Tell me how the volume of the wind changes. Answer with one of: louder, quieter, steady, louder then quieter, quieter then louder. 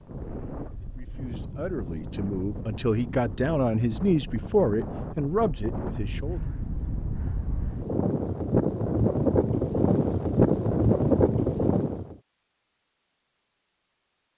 louder.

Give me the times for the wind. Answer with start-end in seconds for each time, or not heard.
0.0-12.2.